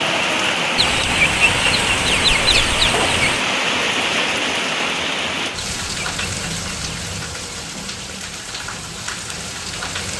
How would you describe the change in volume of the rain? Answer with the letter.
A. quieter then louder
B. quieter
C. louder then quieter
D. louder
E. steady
B.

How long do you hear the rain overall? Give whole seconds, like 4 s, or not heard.
10 s.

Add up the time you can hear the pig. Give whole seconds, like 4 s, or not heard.
not heard.